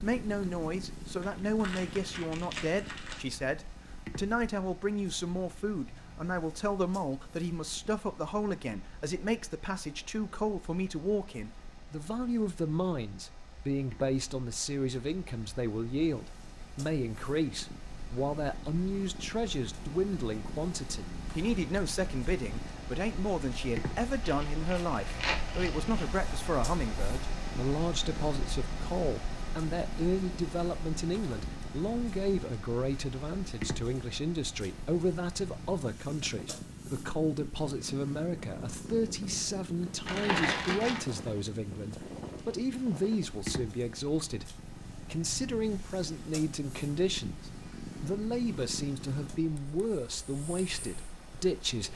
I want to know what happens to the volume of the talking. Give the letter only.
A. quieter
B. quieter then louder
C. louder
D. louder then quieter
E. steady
E.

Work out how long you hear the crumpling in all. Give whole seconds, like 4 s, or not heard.
5 s.